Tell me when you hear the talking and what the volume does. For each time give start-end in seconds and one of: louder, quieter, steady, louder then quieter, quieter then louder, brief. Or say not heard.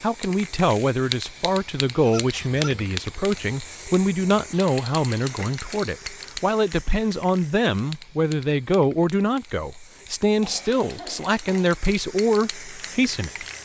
0.0-13.4 steady.